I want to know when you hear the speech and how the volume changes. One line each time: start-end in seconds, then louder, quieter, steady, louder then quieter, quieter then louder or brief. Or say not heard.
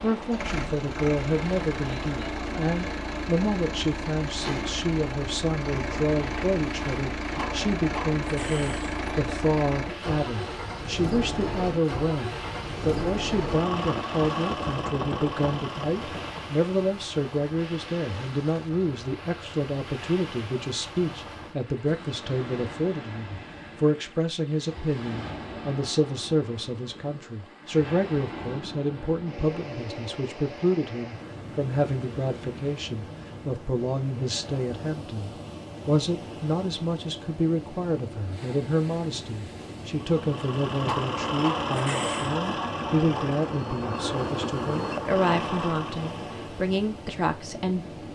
0.0-47.9 steady.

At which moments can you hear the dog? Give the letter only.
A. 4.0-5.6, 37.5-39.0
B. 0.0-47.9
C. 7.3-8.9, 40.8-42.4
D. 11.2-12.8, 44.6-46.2
C.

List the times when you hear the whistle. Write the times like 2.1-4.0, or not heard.
not heard.